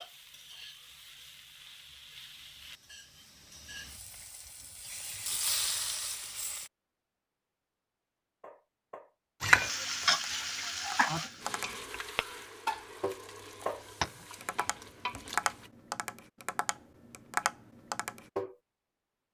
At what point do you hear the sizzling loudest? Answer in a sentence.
The loudest moment of the sizzling is at 10 seconds.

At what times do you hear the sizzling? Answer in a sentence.
You can hear the sizzling from 0.0 to 6.7 s and from 9.4 to 15.7 s.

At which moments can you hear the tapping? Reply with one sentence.
The tapping can be heard from 8.4 to 18.6 s.